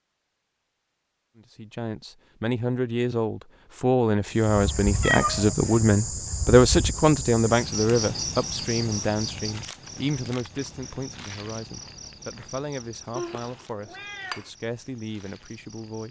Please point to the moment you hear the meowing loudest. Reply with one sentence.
The volume of the meowing peaks at 5 seconds.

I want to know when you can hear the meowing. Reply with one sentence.
You can hear the meowing from 4.5 to 5.5 s and from 13.2 to 14.4 s.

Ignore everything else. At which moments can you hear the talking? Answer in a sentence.
The talking can be heard from 1.4 to 16.0 s.